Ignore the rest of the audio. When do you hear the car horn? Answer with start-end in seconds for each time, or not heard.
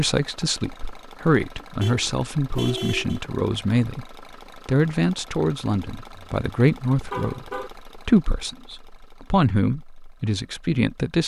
1.8-3.2, 6.2-7.7.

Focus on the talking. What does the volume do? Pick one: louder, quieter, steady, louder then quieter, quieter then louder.
steady.